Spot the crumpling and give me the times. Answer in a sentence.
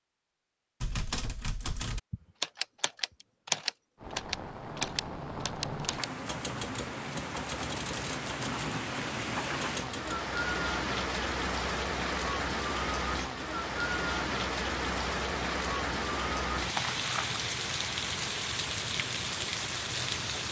You can hear the crumpling from 16.7 to 17.4 s.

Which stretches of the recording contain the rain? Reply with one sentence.
The rain can be heard from 4.0 to 20.4 s.